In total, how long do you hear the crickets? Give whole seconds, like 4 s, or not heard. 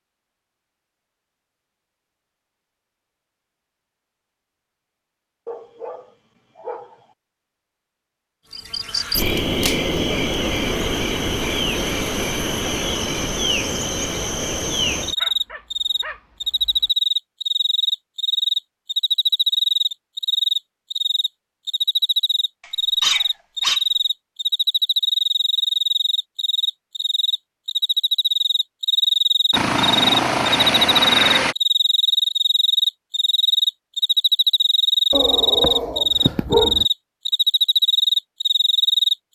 31 s.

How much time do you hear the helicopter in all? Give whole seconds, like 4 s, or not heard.
2 s.